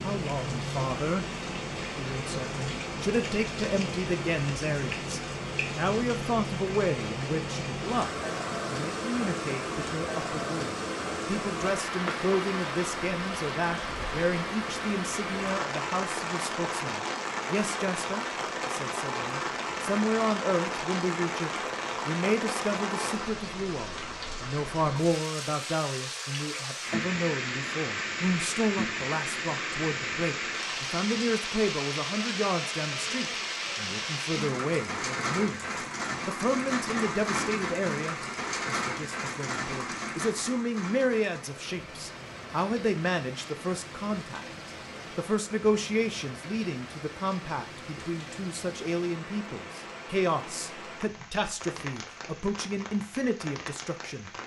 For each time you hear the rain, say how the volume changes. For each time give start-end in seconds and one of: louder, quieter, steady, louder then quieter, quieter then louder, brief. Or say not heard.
0.0-54.4 quieter.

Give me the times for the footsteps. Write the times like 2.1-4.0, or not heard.
not heard.